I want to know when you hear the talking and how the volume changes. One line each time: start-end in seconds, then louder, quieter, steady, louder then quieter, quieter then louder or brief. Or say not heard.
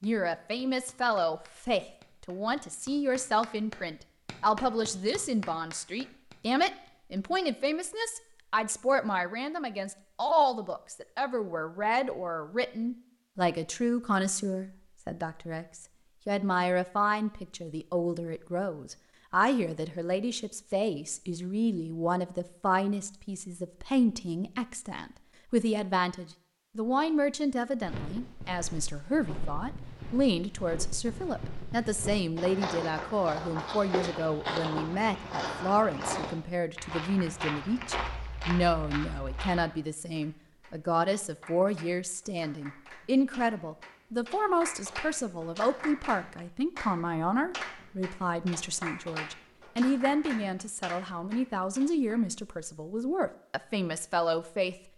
0.0-54.8 steady.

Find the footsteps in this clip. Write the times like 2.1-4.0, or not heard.
27.8-39.7.